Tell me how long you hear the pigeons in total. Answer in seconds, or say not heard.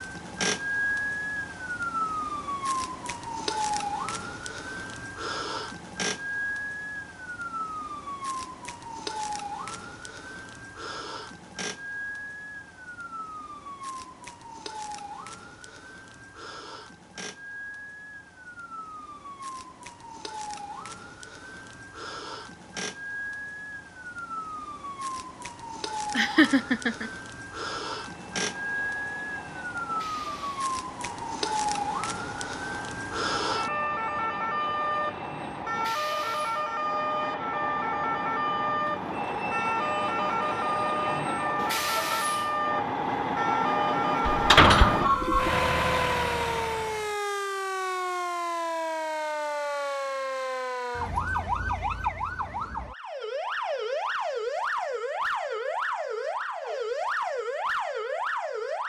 not heard.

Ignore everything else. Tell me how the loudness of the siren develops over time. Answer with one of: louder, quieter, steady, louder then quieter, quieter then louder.
quieter then louder.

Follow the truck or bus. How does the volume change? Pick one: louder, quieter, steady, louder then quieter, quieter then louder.
louder.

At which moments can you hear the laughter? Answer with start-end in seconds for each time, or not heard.
26.1-27.1.